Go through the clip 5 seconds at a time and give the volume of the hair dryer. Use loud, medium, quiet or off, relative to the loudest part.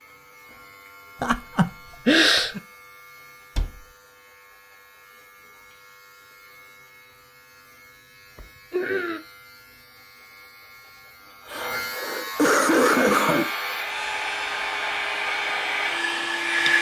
off, off, medium, loud.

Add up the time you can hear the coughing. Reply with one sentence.
The coughing can be heard for 4 seconds in total.